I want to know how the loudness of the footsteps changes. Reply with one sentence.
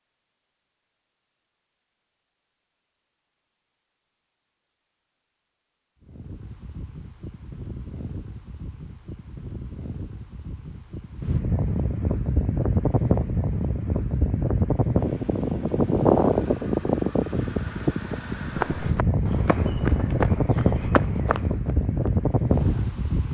The volume of the footsteps goes up, then down.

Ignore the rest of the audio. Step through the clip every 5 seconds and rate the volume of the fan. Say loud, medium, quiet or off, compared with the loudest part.
off, quiet, loud, loud, loud.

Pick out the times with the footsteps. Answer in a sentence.
You can hear the footsteps from 18.6 to 22.9 s.